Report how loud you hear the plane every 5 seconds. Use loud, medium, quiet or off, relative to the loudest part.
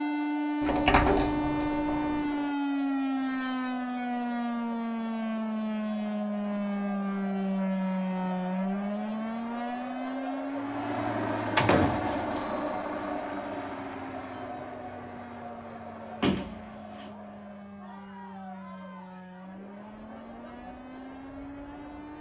off, off, loud, quiet, quiet.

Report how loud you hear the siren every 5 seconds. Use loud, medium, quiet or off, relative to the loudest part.
loud, loud, medium, quiet, quiet.